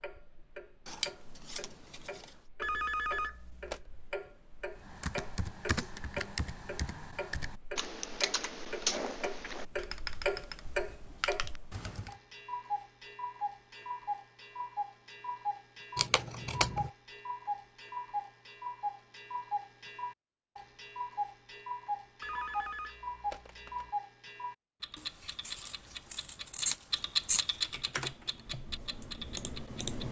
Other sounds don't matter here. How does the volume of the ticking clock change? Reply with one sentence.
The loudness of the ticking clock goes up.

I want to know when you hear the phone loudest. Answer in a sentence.
The loudest moment of the phone is at 3 seconds.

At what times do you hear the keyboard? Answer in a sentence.
You can hear the keyboard from 4.8 to 12.2 s and from 27.5 to 30.0 s.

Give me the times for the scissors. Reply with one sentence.
You can hear the scissors from 0.8 to 1.6 s, from 15.9 to 16.9 s and from 24.9 to 27.4 s.